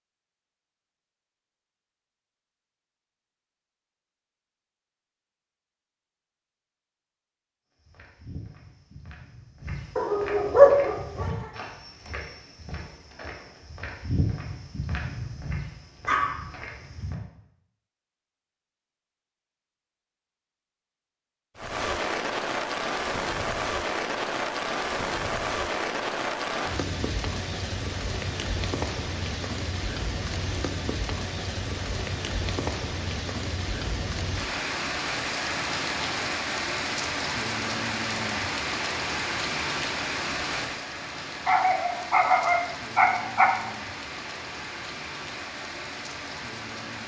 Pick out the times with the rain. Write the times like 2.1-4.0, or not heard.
21.6-47.0.